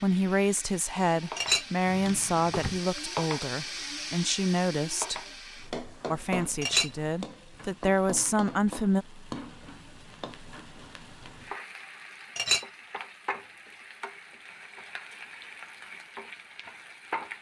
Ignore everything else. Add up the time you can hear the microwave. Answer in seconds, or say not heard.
not heard.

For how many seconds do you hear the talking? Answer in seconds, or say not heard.
8 s.